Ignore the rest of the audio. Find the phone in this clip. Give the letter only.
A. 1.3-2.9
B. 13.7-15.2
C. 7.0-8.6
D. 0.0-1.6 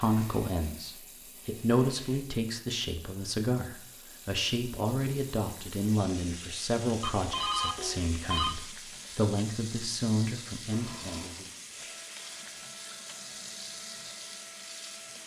C.